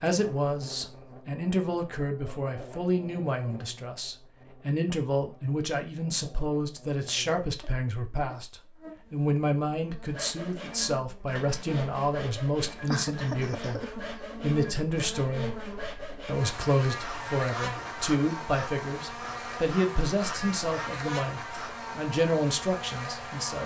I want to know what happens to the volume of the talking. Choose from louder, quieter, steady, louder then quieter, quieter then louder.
steady.